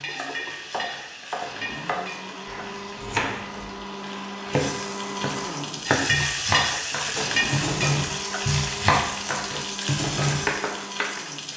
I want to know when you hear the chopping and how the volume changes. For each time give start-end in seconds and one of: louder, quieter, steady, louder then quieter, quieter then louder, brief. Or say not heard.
0.1-11.2 louder.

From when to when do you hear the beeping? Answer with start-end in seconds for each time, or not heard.
not heard.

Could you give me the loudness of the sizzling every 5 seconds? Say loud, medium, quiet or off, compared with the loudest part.
medium, loud, medium.